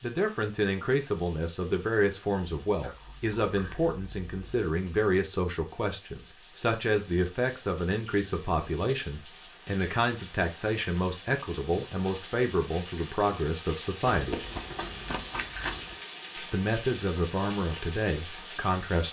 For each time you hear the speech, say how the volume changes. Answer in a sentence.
The speech can be heard from 0.0 to 14.4 s, at a steady volume; and briefly from 16.4 to 19.0 s.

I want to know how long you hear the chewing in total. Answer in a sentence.
The chewing can be heard for 4 seconds in total.